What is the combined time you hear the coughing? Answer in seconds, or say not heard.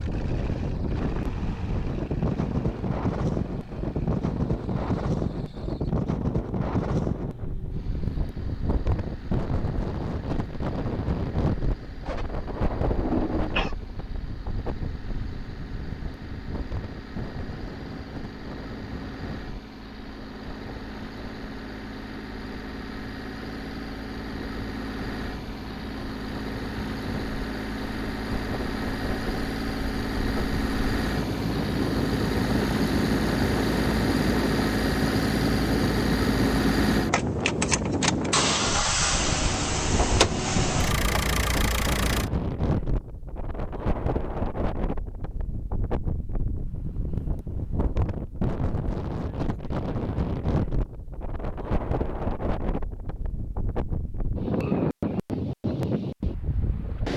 2 s.